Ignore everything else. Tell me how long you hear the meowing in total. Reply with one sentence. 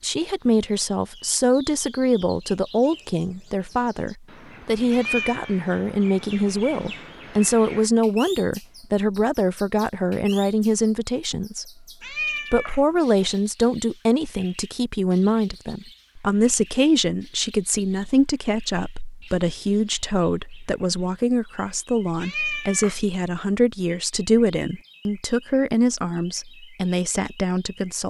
The meowing can be heard for 3 seconds in total.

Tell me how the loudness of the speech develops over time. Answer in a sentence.
The loudness of the speech stays about the same.